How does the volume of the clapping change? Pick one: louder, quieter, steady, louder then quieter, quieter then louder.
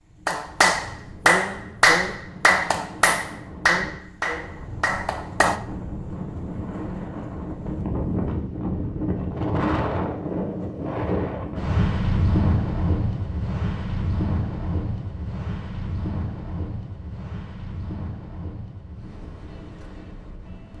quieter.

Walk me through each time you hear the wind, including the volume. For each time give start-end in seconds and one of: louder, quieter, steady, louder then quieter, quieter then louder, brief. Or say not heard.
0.0-20.7 louder then quieter.